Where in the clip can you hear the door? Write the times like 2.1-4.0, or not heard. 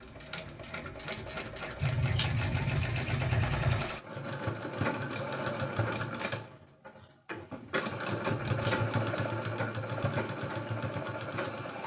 not heard.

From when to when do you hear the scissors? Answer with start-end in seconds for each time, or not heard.
1.8-3.9, 8.2-8.9.